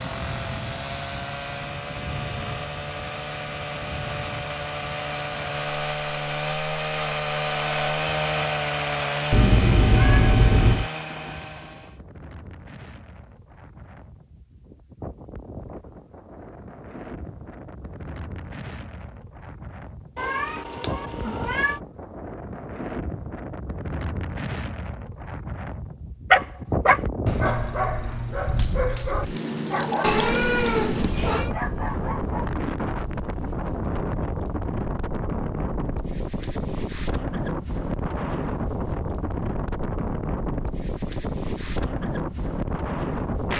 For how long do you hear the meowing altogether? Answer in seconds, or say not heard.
5 s.